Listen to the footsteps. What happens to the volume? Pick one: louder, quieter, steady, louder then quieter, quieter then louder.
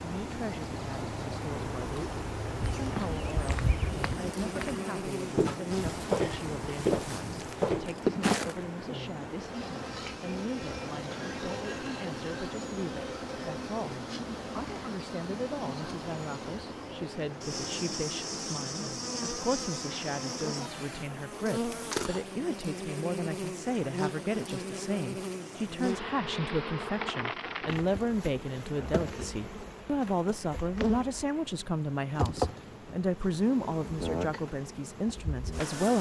quieter then louder.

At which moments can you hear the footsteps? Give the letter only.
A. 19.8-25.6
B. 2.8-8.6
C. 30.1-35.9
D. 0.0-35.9
B.